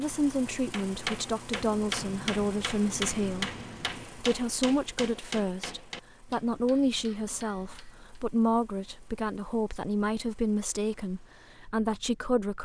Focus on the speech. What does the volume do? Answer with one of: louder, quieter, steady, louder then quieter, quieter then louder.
steady.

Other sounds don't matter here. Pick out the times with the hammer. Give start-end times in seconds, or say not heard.
0.7-8.2.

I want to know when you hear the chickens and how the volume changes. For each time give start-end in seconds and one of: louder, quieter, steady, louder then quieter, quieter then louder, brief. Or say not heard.
not heard.